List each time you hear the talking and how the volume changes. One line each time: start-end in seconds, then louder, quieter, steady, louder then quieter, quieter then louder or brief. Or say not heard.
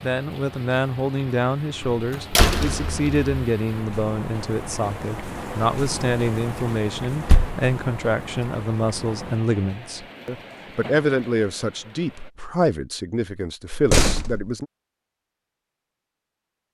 0.0-14.7 steady.